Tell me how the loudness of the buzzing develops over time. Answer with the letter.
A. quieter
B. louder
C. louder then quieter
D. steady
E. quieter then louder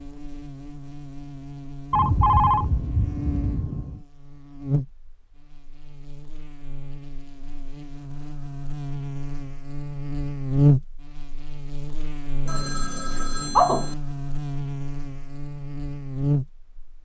C.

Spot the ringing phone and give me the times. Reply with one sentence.
The ringing phone can be heard from 1.9 to 4.0 s and from 12.4 to 13.9 s.